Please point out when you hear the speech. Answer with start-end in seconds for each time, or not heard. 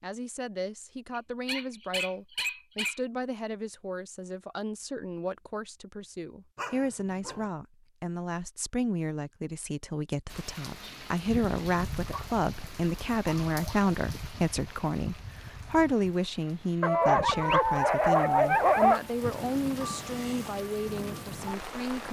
0.0-22.0.